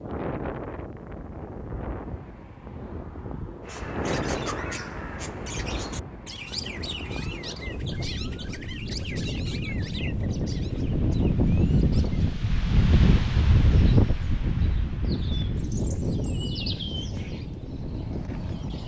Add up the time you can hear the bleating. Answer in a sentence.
You can't hear the bleating here.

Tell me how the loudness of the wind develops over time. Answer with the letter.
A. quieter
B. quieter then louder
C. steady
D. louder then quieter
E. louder
D.